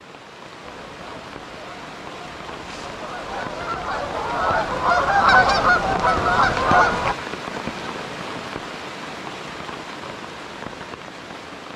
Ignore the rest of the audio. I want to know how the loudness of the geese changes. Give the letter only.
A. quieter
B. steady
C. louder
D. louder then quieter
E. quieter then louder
C.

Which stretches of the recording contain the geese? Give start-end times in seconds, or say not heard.
0.6-7.2.